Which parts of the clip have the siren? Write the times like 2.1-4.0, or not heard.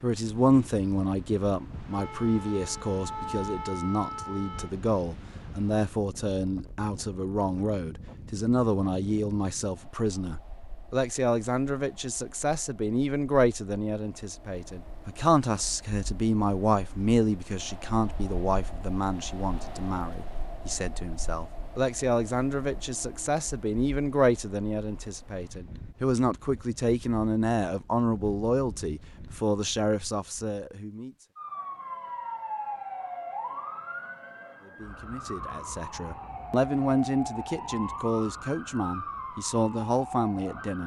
1.9-4.7, 31.4-40.8.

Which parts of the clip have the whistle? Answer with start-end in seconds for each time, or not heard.
not heard.